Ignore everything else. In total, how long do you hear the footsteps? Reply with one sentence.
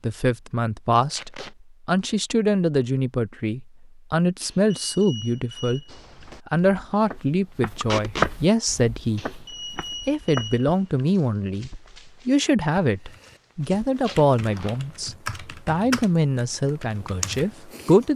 The footsteps can be heard for 9 seconds in total.